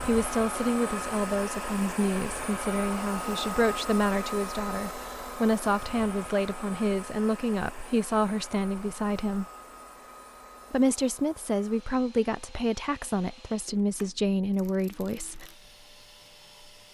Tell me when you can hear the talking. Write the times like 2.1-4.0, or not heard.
0.1-9.4, 10.7-15.4.